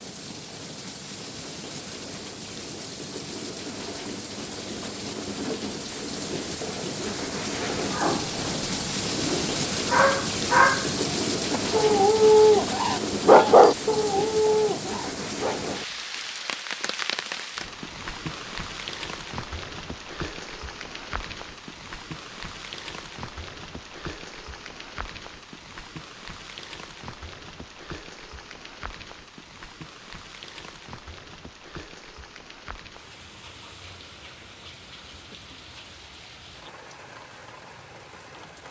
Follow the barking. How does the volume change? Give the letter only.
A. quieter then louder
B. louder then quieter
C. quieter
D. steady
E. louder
B.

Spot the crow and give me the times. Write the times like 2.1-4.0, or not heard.
not heard.